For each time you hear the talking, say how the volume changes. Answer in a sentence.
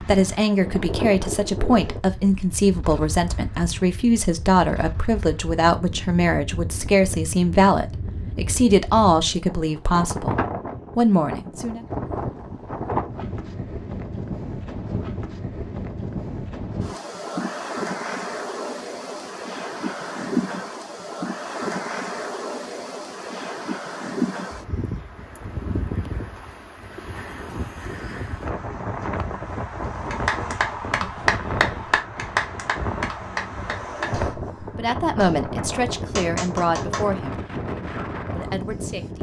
The talking can be heard from 0.1 to 10.3 s, at a steady volume; briefly from 10.9 to 11.8 s; briefly from 34.8 to 37.4 s; and briefly from 38.3 to 39.1 s.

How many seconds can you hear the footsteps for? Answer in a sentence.
You can't hear the footsteps here.